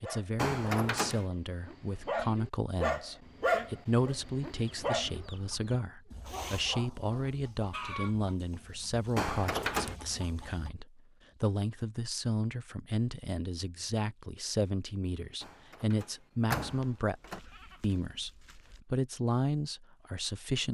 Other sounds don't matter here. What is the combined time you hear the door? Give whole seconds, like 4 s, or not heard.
4 s.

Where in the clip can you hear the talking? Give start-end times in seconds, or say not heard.
0.0-20.6.